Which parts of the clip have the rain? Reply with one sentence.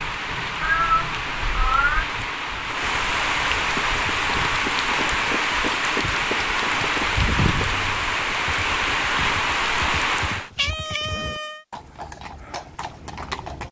The rain can be heard from 0.0 to 10.5 s.